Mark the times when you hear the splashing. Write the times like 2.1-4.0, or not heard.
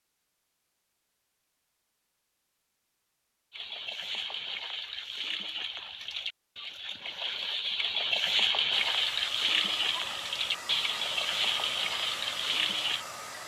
3.5-13.1.